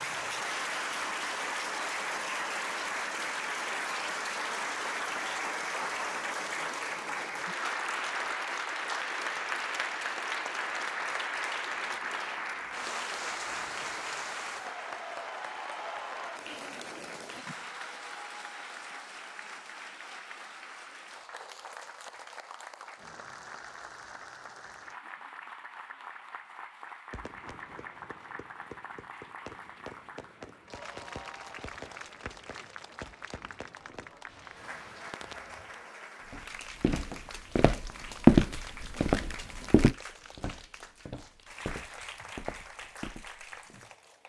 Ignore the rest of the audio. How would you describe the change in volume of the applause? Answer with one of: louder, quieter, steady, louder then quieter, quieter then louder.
quieter.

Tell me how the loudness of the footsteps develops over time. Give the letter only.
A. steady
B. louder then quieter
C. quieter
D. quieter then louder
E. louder
B.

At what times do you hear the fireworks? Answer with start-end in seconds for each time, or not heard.
27.1-35.5.